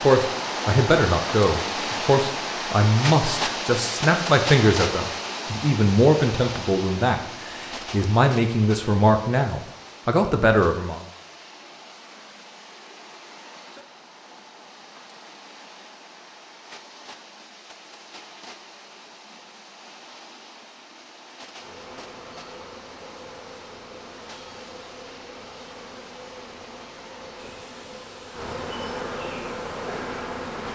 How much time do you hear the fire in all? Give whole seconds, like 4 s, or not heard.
not heard.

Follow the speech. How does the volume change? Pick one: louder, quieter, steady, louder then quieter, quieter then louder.
steady.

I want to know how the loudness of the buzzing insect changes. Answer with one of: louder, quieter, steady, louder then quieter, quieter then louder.
louder.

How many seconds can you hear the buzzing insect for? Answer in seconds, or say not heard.
9 s.